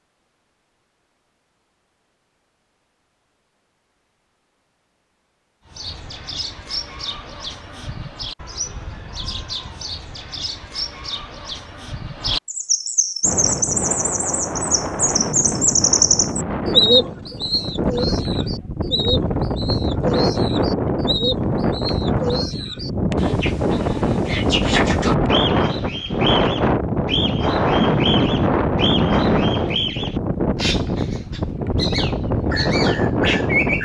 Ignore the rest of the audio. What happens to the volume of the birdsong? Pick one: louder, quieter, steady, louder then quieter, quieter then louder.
louder then quieter.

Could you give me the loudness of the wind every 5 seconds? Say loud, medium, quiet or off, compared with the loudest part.
off, off, medium, medium, loud, loud, loud.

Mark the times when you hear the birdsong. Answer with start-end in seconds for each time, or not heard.
5.7-33.8.